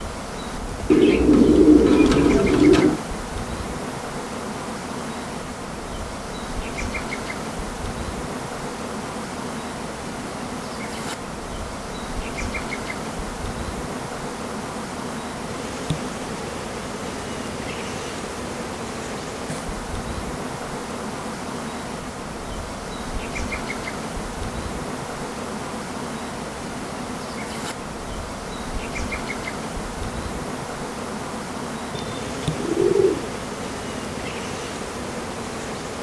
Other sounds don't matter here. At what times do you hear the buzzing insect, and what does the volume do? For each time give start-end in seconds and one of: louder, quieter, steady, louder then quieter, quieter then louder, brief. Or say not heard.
0.0-35.9 steady.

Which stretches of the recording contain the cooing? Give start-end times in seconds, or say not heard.
0.9-3.0, 31.9-33.4.